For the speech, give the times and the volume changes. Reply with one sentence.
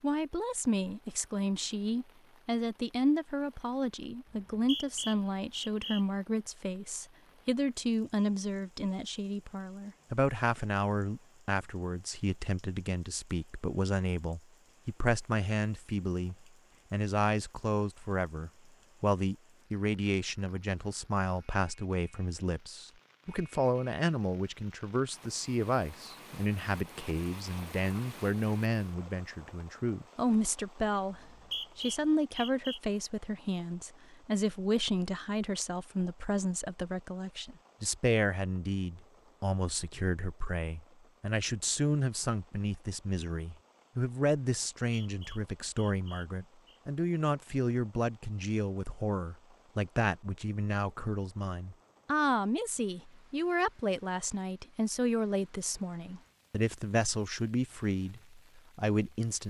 You can hear the speech from 0.0 to 59.4 s, at a steady volume.